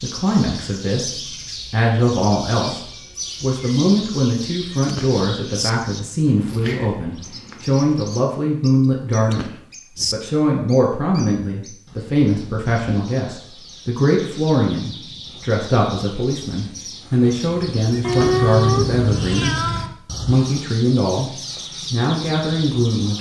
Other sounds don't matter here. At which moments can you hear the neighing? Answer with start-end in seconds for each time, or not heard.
4.7-5.7, 9.1-10.2, 17.9-18.4.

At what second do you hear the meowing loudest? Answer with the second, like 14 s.
18 s.